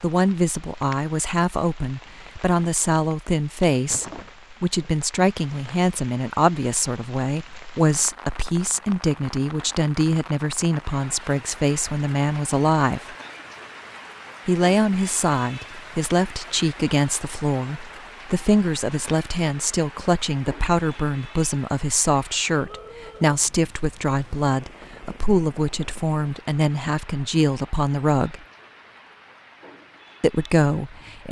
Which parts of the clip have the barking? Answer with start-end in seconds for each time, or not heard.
not heard.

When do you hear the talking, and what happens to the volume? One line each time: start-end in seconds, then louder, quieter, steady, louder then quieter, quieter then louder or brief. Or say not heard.
0.0-13.2 steady
14.4-28.4 steady
30.2-31.2 brief.